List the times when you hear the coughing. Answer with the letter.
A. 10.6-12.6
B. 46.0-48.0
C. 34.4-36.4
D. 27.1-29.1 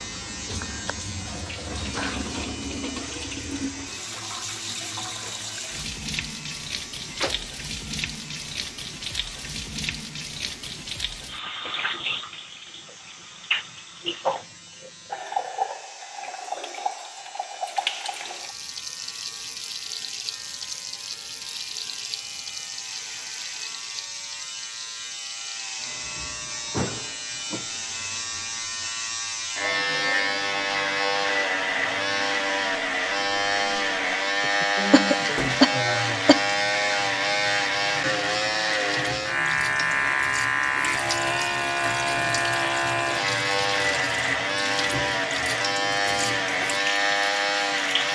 C.